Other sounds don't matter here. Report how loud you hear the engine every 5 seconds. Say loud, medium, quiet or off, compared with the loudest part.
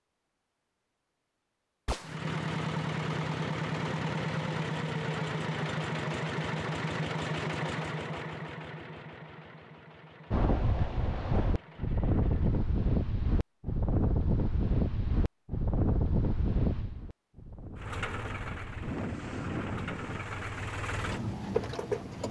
loud, loud, quiet, medium, loud.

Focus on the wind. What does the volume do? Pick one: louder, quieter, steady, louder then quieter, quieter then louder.
quieter.